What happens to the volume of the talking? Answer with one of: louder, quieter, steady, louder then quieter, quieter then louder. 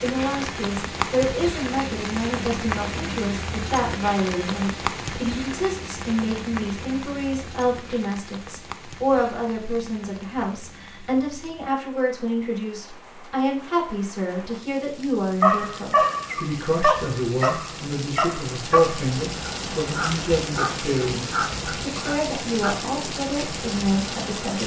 steady.